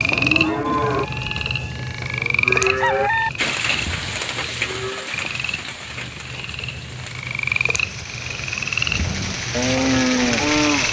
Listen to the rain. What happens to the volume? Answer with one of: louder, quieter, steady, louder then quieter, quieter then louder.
quieter then louder.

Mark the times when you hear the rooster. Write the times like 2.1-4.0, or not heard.
0.4-3.3.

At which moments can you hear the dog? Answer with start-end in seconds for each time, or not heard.
not heard.